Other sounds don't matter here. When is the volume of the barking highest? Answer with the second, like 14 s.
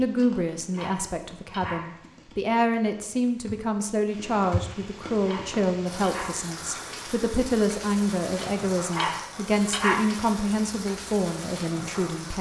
10 s.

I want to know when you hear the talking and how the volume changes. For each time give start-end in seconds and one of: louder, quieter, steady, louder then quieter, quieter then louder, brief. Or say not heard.
0.0-12.3 steady.